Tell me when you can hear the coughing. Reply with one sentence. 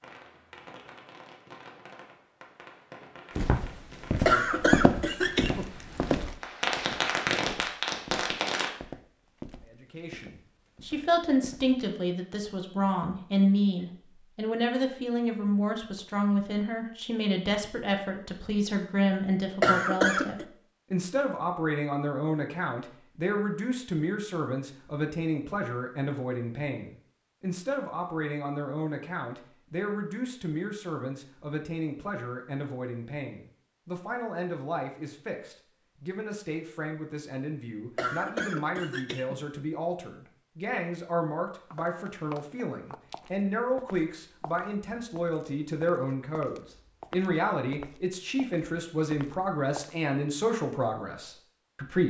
You can hear the coughing from 4.2 to 5.7 s, from 19.6 to 20.4 s and from 38.0 to 39.4 s.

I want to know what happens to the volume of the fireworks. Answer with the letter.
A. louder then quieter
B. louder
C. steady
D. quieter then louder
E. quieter
B.